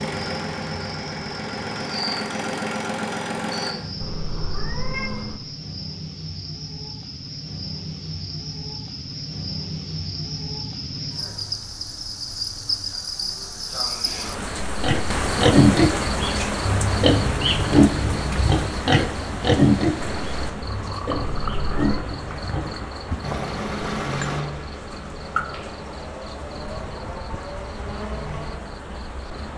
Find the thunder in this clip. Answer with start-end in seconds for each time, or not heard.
not heard.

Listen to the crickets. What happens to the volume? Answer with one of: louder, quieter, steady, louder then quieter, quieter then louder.
louder then quieter.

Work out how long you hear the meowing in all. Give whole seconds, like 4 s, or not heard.
2 s.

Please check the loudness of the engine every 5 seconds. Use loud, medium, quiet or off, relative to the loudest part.
loud, off, off, off, loud, medium.